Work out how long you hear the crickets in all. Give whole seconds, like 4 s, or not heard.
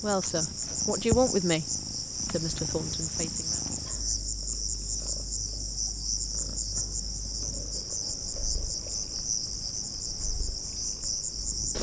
12 s.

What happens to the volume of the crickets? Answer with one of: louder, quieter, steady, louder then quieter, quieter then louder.
steady.